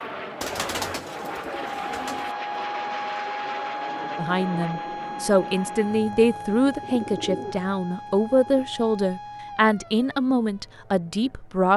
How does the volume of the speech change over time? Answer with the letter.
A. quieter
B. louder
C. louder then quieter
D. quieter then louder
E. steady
E.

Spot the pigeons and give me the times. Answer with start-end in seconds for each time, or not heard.
0.4-2.4, 6.7-8.7.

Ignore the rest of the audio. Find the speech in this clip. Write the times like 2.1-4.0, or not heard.
4.2-11.7.